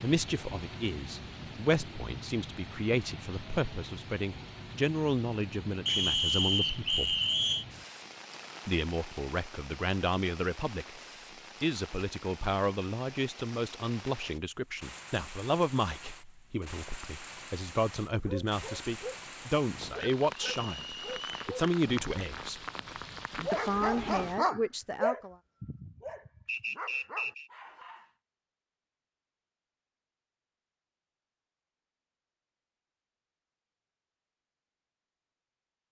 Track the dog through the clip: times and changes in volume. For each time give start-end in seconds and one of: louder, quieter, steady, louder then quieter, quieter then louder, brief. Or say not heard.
18.1-28.1 louder then quieter.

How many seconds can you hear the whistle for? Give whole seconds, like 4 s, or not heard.
4 s.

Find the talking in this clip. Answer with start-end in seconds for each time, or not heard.
0.0-7.2, 8.7-10.9, 11.6-22.6, 23.5-25.4.